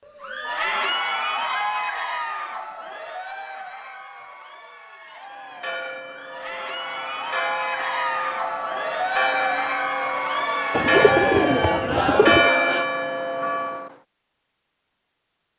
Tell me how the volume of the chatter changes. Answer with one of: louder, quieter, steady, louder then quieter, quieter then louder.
quieter then louder.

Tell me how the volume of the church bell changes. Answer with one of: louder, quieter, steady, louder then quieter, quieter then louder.
louder.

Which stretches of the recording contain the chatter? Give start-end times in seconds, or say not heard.
0.1-12.9.